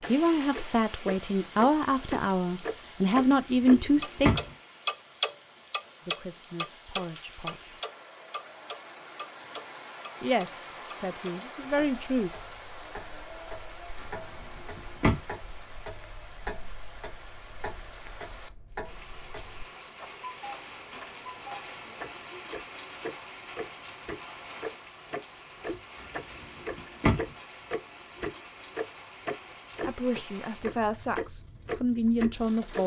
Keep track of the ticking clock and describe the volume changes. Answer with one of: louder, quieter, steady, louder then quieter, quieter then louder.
quieter then louder.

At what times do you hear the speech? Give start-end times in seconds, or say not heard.
0.1-4.4, 6.0-7.6, 10.2-12.3, 29.8-32.8.